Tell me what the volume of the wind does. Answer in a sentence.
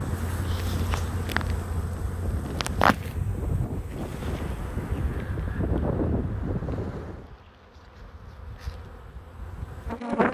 The volume of the wind goes up.